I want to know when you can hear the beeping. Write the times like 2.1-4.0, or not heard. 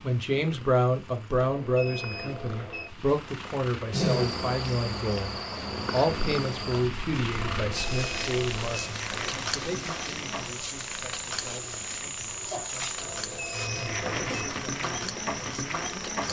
1.4-2.9, 7.4-8.9, 13.0-14.2.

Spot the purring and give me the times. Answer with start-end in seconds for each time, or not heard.
0.0-16.2.